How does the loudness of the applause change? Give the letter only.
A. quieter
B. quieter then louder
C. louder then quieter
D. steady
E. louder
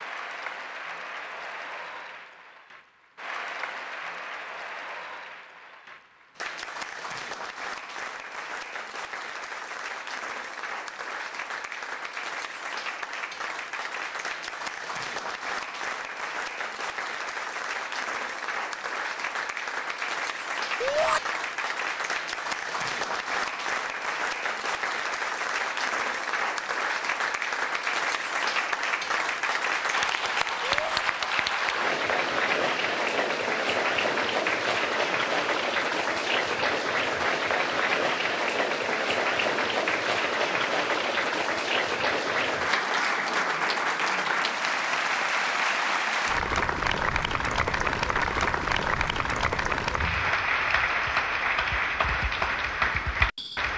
E.